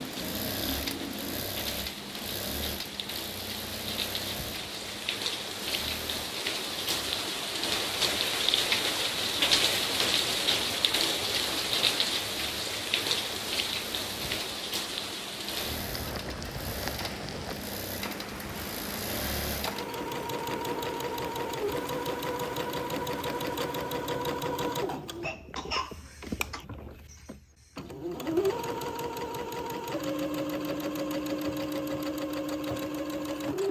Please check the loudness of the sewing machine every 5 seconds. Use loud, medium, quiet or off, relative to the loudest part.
medium, quiet, quiet, medium, loud, loud, loud.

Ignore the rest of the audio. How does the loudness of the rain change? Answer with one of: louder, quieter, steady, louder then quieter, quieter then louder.
louder then quieter.